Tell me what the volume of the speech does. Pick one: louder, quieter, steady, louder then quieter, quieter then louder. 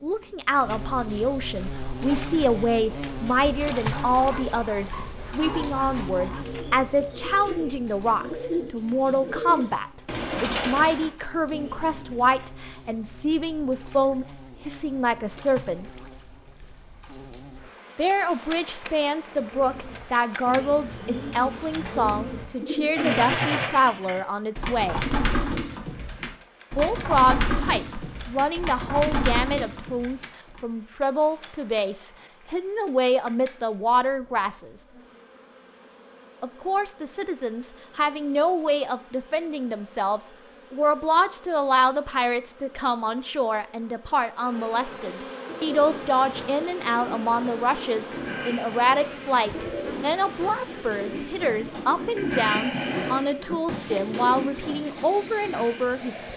steady.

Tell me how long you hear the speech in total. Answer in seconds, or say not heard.
51 s.